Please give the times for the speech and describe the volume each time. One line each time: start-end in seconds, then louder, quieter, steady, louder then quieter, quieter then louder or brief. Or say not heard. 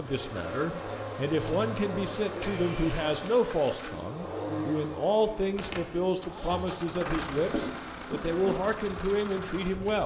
0.0-10.0 steady.